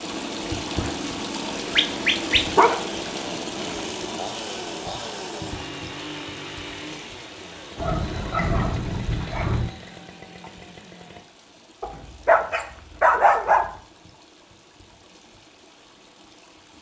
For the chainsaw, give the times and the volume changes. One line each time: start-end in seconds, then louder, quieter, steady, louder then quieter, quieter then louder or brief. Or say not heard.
0.0-11.2 quieter.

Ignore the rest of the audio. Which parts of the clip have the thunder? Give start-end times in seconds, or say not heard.
7.8-9.7.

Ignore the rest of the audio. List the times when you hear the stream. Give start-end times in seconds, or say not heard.
0.0-16.7.